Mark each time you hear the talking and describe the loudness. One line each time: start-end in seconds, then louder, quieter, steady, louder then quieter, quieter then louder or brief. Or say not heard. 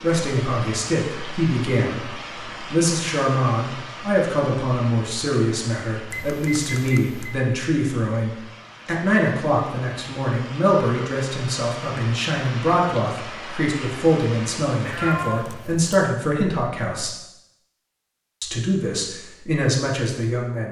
0.0-17.1 steady
18.4-20.6 brief.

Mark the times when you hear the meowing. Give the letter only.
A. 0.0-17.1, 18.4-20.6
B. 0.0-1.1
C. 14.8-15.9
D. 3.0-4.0
C.